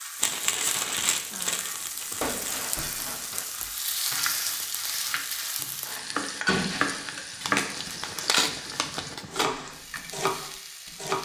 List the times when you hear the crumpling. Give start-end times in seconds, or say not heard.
0.1-2.7, 7.4-9.4.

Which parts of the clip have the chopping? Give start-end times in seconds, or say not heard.
3.3-11.1.